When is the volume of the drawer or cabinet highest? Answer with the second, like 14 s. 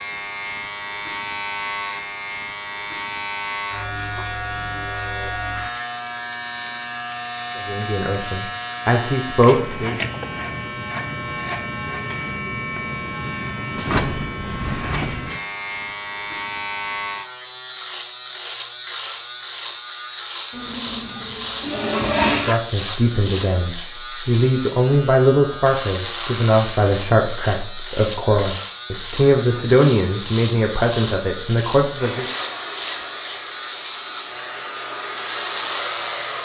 14 s.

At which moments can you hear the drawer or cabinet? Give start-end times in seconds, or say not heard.
13.8-15.3.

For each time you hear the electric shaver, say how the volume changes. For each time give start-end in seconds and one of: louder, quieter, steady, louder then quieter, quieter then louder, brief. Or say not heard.
0.0-36.4 steady.